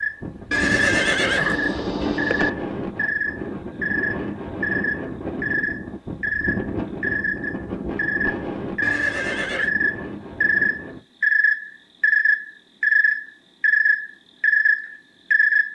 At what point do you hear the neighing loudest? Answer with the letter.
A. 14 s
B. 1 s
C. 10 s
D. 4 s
B.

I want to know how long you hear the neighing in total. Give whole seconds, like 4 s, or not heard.
3 s.